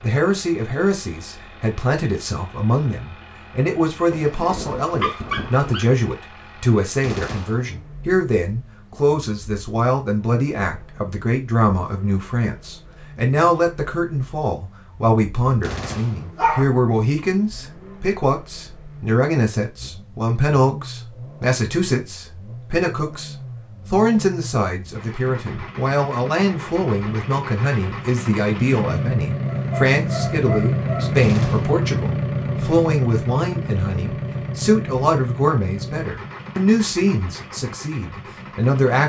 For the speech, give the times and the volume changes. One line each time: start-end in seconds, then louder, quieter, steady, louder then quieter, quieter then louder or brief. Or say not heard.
0.0-39.0 steady.